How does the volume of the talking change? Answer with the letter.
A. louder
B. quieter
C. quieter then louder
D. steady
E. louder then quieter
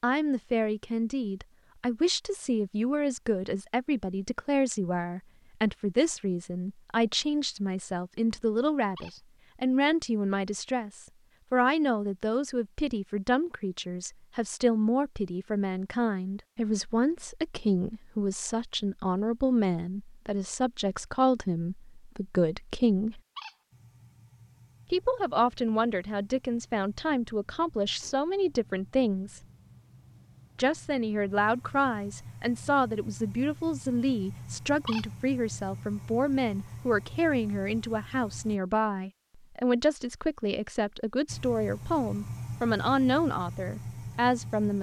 D.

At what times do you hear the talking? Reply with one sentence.
You can hear the talking from 0.0 to 23.2 s, from 24.9 to 29.4 s and from 30.6 to 44.7 s.